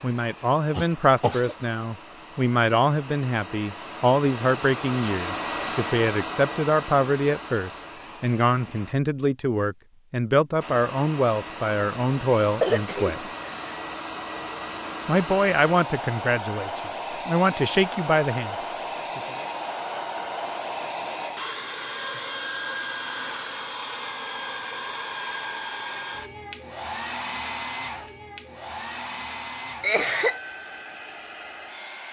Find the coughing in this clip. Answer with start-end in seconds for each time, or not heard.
0.7-1.6, 12.6-13.7, 29.8-30.4.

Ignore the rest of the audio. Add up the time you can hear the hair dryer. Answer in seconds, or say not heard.
30 s.